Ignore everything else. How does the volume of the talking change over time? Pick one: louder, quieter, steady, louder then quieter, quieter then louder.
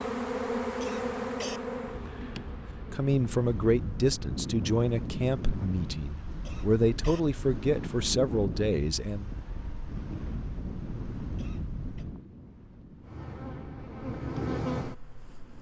quieter then louder.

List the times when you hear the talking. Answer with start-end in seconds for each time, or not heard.
2.9-9.3.